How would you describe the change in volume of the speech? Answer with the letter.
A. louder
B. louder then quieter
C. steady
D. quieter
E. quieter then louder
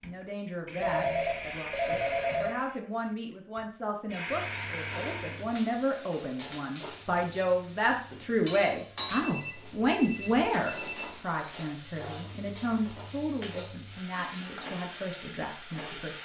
B.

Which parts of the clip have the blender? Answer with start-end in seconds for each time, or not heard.
0.0-5.5.